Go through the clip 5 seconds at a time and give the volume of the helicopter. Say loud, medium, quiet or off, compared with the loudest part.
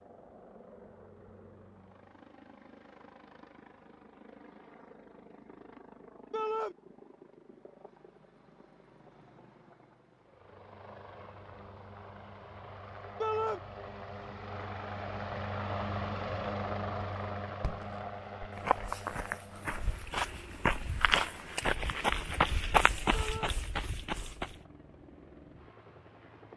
quiet, quiet, medium, loud, quiet, quiet.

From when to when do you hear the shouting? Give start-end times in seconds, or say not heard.
6.3-6.8, 13.2-13.6, 23.1-23.6.